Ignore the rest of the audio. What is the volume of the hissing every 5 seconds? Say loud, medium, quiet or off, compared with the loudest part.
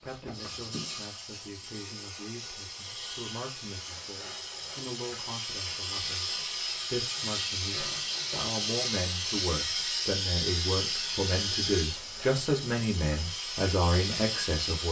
medium, loud, loud.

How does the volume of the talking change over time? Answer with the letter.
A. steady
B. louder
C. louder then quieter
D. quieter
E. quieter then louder
B.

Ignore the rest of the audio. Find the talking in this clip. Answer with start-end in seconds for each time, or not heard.
0.0-14.8.